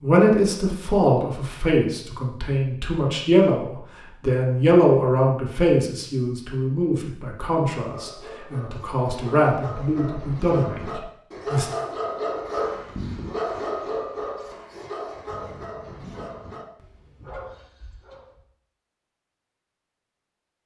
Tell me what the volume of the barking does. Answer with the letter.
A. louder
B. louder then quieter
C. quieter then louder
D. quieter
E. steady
B.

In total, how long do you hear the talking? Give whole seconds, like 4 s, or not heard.
12 s.